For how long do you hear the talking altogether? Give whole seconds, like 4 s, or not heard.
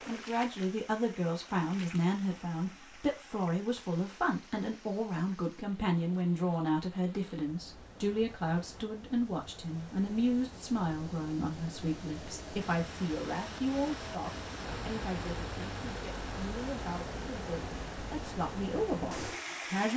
20 s.